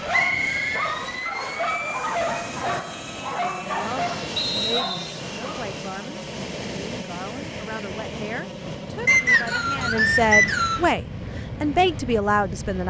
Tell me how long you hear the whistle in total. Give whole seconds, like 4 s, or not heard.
4 s.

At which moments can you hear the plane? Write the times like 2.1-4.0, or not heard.
0.0-12.8.